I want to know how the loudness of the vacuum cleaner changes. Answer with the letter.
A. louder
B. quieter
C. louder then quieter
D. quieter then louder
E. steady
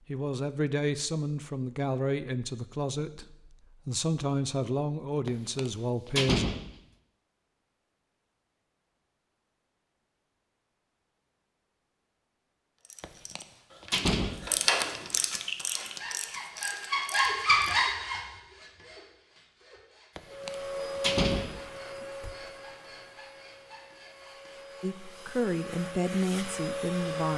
D.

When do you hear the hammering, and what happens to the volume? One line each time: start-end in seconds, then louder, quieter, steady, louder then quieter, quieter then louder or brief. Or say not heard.
not heard.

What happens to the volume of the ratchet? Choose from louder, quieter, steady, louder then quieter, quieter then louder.
louder then quieter.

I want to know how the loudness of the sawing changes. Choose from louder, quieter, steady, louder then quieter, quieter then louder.
louder then quieter.